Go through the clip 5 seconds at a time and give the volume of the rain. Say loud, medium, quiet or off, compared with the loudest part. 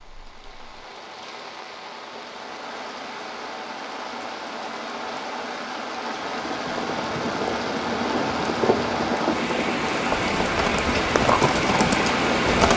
quiet, medium, loud.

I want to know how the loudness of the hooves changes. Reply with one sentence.
The loudness of the hooves goes up.